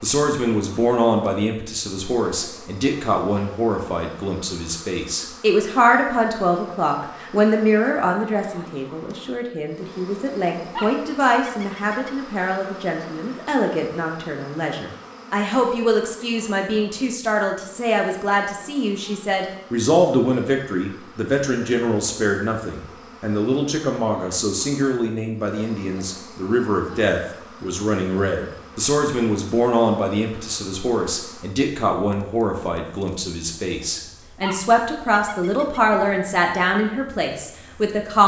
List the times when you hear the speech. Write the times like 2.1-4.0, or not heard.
0.0-38.2.